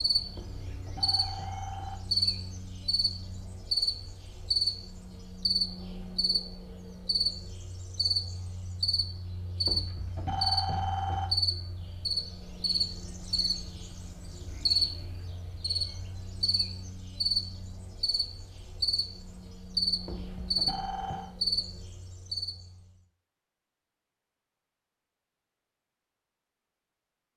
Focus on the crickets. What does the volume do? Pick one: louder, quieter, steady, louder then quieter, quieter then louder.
steady.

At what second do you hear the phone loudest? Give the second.
11 s.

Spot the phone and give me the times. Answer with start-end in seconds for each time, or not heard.
0.3-2.0, 9.7-11.3, 20.1-21.3.